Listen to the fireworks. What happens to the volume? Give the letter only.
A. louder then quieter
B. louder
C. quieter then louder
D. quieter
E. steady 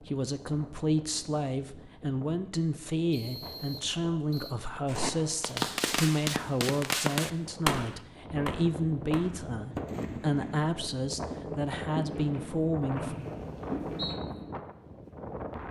D.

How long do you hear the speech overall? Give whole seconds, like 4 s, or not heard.
13 s.